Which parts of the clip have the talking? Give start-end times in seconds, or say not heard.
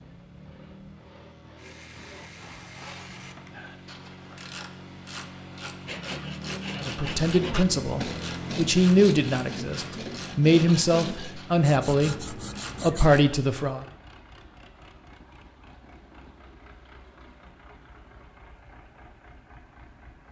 6.8-13.8.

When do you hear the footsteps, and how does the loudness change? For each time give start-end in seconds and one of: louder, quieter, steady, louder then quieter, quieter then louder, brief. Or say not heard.
not heard.